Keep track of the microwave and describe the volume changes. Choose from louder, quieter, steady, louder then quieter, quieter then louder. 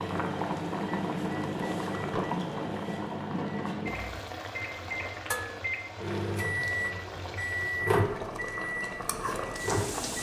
louder.